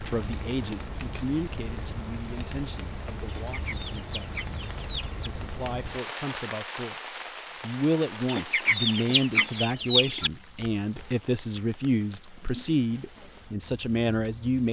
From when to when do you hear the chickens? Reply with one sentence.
The chickens can be heard from 3.2 to 5.3 s and from 8.2 to 10.3 s.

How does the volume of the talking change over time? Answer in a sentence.
The loudness of the talking goes down, then up.